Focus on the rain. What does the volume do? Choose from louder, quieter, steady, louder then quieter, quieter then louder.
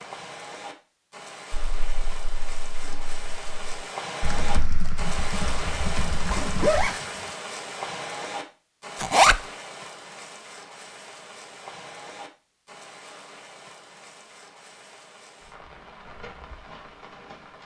louder then quieter.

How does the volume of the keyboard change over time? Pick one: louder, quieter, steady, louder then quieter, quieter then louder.
louder.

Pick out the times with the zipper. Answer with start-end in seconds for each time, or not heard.
6.3-7.3, 9.0-9.4.